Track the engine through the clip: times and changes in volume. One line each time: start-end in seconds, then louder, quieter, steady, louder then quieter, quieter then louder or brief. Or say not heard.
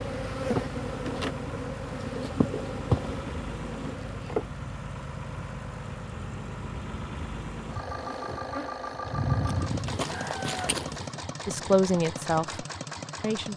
0.0-13.5 steady.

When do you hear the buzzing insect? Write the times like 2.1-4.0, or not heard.
0.0-4.5, 7.7-11.1.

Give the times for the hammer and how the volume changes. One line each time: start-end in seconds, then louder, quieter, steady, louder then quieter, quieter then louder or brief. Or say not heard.
not heard.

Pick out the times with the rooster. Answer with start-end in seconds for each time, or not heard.
10.1-11.6.